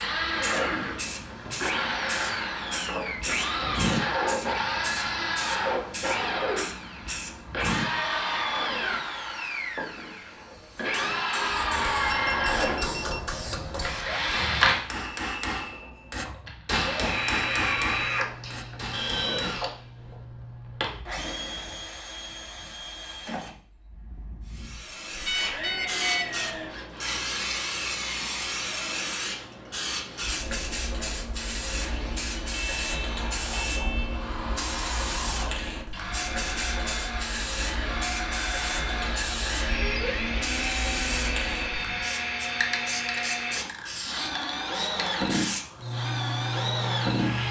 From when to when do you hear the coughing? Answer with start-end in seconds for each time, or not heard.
not heard.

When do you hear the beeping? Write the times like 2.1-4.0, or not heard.
12.1-13.3, 25.2-26.4, 32.5-34.2.